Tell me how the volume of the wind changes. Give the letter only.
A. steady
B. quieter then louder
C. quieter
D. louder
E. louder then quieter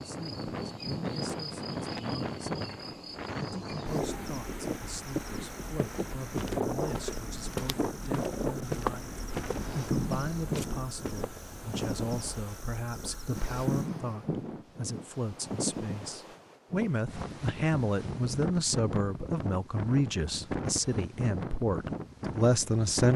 A.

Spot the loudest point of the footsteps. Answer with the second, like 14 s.
9 s.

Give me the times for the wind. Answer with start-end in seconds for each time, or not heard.
0.0-23.1.